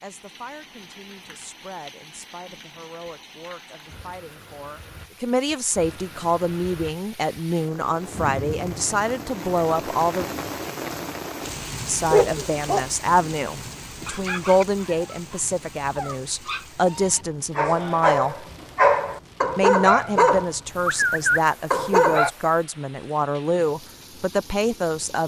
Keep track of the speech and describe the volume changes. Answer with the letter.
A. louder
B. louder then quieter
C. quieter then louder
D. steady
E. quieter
A.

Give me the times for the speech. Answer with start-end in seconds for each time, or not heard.
0.0-10.2, 11.8-18.4, 19.6-25.2.